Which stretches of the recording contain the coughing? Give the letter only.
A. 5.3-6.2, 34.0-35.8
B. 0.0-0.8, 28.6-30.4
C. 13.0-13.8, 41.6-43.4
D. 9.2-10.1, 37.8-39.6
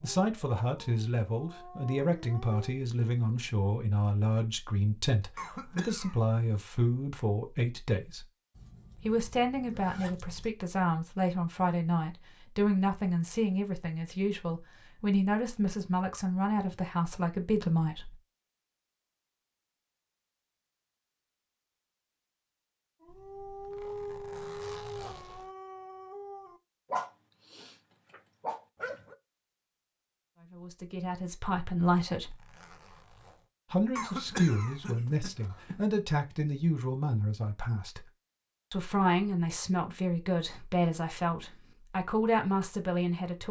A.